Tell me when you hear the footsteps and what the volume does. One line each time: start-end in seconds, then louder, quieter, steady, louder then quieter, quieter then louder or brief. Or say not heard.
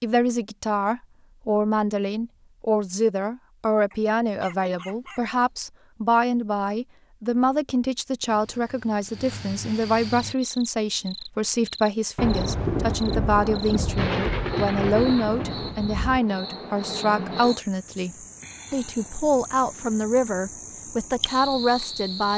not heard.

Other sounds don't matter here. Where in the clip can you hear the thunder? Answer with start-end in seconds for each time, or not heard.
12.2-16.2.